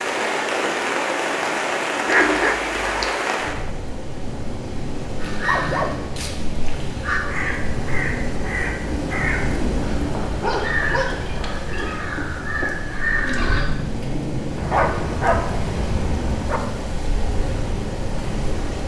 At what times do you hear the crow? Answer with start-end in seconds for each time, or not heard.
5.2-13.7.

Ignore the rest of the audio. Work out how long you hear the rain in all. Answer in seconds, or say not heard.
19 s.